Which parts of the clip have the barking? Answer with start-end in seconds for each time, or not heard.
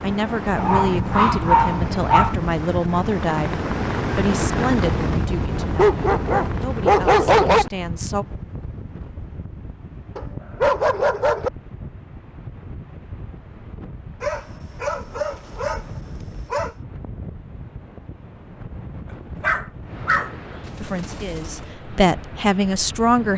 0.6-2.4, 5.8-7.7, 10.2-11.5, 14.2-16.8, 19.4-21.6.